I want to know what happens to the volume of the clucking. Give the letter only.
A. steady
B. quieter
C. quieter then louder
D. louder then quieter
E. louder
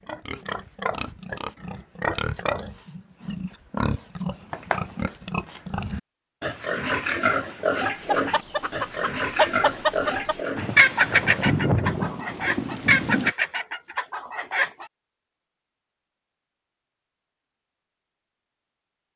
D.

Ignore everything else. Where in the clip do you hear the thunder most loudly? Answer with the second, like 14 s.
12 s.